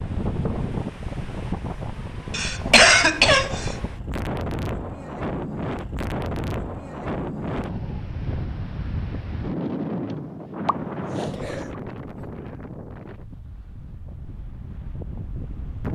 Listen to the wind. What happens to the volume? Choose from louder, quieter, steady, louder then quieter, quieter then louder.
quieter.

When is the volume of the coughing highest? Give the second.
3 s.